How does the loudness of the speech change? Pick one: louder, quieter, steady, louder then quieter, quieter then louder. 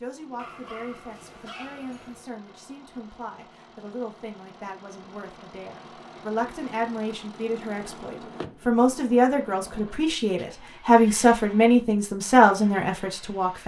louder.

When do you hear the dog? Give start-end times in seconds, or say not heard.
0.3-2.2.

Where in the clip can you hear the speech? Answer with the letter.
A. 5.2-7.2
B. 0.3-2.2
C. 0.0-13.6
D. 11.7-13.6
C.